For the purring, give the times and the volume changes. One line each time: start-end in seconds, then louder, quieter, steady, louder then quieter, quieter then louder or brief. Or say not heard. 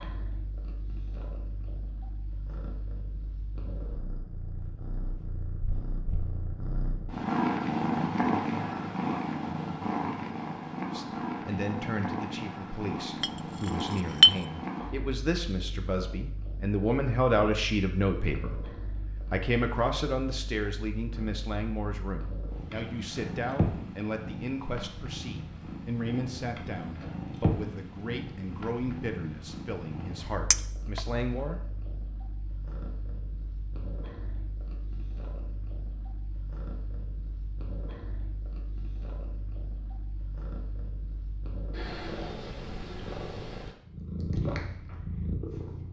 0.0-45.8 quieter.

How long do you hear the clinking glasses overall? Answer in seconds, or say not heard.
2 s.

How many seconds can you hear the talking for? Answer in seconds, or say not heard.
21 s.